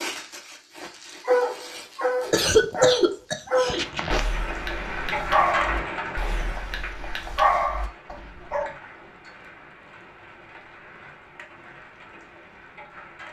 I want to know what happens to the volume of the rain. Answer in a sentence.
The loudness of the rain goes down.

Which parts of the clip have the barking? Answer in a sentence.
The barking can be heard from 0.0 to 8.7 s.